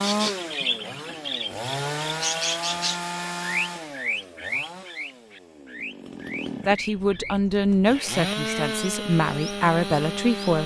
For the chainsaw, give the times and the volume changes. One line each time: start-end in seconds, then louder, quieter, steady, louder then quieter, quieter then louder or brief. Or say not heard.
0.0-10.6 quieter then louder.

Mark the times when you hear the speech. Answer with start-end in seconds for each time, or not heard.
6.7-10.6.